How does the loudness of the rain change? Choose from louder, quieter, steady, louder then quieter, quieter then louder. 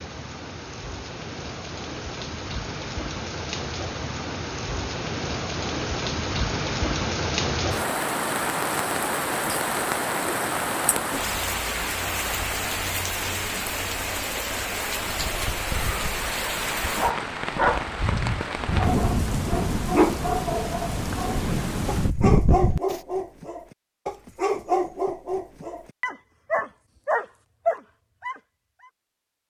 louder.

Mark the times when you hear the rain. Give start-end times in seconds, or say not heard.
0.0-23.0.